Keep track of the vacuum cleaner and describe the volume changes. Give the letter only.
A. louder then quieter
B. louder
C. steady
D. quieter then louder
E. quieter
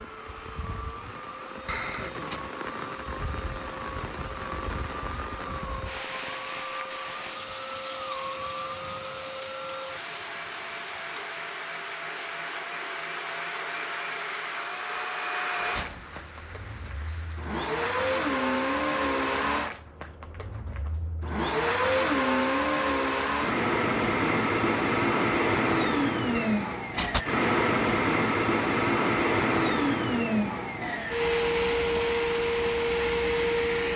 B.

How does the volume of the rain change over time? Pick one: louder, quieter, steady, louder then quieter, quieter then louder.
quieter.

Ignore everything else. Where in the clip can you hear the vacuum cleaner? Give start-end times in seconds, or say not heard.
0.0-33.9.